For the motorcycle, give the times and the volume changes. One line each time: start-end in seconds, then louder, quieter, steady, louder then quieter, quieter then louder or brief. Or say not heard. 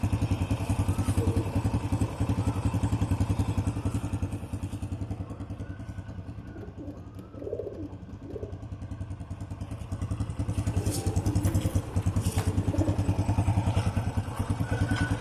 0.0-15.1 quieter then louder.